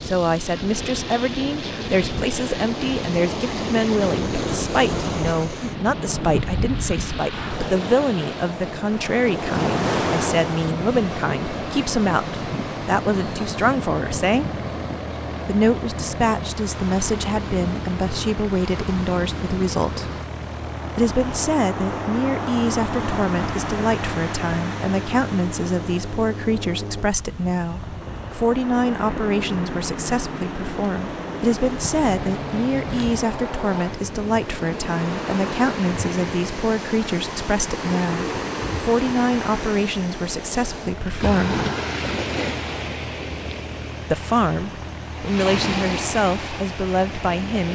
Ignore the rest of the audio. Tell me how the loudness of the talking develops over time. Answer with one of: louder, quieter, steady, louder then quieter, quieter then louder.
steady.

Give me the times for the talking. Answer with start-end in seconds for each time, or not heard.
0.0-14.6, 15.4-20.1, 20.9-41.6, 44.1-47.6.